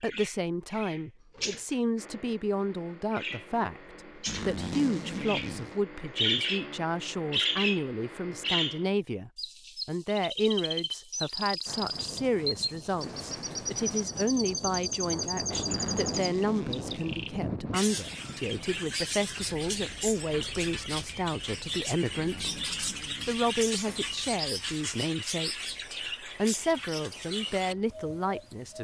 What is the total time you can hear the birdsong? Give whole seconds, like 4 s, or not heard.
29 s.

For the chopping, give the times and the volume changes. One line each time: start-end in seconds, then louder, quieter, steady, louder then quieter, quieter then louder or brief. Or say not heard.
not heard.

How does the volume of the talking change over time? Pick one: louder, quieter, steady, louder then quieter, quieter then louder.
steady.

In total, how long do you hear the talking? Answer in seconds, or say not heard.
28 s.